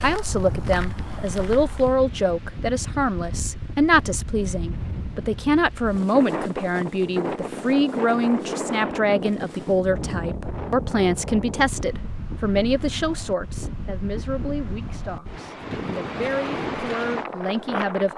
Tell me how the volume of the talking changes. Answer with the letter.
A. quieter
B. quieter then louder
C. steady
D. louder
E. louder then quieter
A.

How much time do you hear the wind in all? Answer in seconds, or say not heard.
18 s.